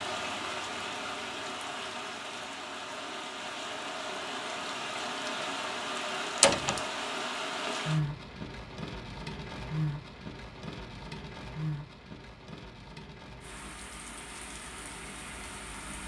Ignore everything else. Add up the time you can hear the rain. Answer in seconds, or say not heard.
16 s.